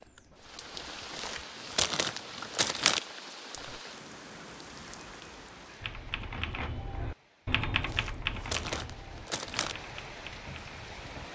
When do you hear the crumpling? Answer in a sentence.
You can hear the crumpling from 1.1 to 3.0 s and from 7.8 to 9.8 s.